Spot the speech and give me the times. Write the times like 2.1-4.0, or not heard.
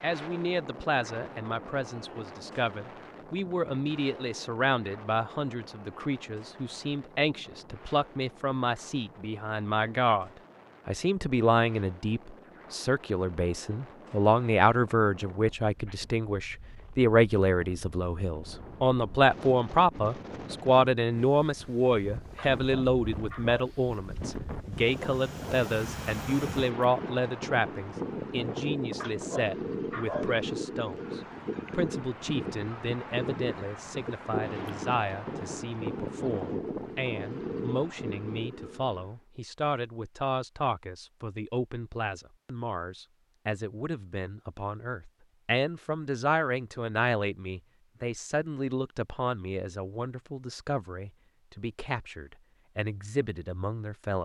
0.0-54.2.